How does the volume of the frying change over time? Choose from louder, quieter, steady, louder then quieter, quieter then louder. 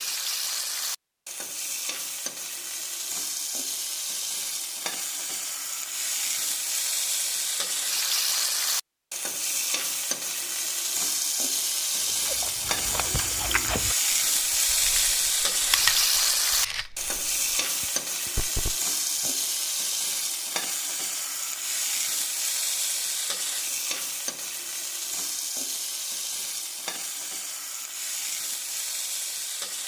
louder then quieter.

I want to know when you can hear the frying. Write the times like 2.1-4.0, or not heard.
0.0-29.8.